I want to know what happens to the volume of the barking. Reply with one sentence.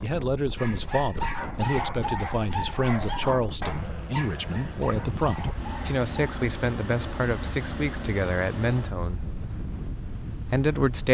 The volume of the barking goes down.